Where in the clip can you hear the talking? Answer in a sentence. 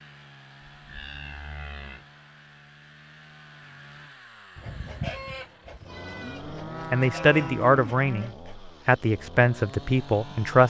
You can hear the talking from 6.9 to 10.6 s.